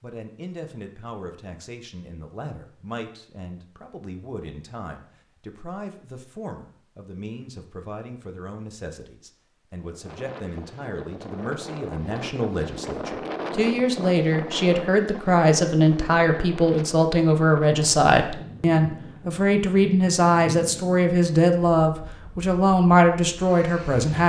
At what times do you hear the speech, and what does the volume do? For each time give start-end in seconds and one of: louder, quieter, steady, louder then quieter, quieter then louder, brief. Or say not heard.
0.0-24.2 louder.